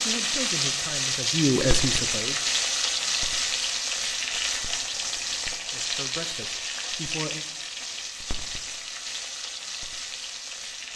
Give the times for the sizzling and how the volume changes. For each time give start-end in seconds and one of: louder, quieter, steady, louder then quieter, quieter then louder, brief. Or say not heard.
0.0-10.9 quieter.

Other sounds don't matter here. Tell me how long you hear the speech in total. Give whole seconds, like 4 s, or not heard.
4 s.